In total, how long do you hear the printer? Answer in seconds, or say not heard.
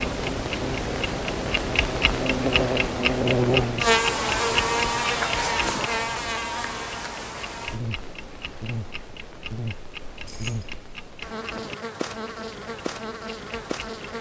not heard.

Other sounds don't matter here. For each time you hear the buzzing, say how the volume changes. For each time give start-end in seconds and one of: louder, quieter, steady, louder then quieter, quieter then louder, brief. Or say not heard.
0.1-14.1 louder then quieter.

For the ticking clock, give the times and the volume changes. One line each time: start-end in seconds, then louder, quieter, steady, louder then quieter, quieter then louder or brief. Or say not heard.
0.0-14.1 quieter.